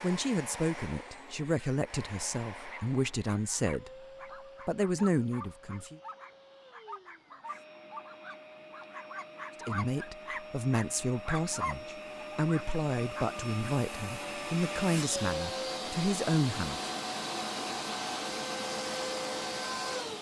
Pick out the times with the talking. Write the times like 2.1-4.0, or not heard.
0.0-3.9, 4.7-6.0, 9.6-16.9.